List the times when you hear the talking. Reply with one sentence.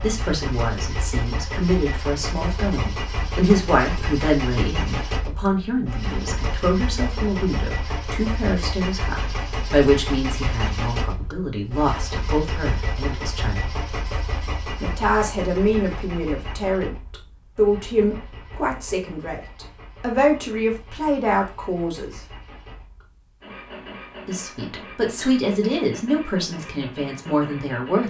The talking can be heard from 0.0 to 13.7 s, from 14.8 to 22.2 s and from 24.2 to 28.0 s.